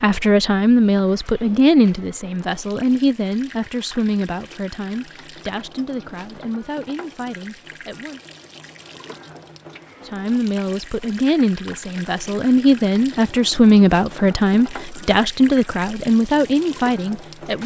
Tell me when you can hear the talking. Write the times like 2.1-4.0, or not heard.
0.0-8.2, 10.1-17.6.